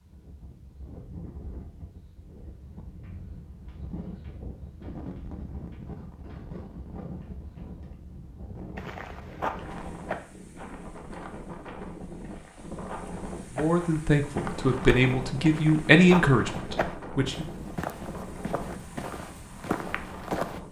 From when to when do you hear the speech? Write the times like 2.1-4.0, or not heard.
13.6-17.4.